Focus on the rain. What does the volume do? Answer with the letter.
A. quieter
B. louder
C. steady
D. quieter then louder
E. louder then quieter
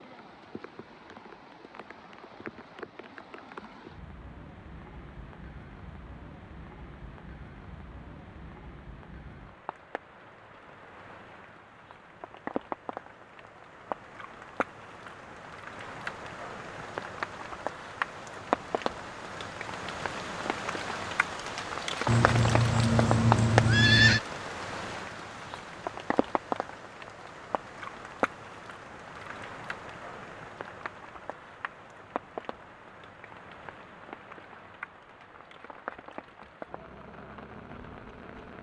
E.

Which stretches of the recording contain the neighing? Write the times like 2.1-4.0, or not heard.
22.1-24.2.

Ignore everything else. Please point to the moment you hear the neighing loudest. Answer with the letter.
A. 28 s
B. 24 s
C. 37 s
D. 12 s
B.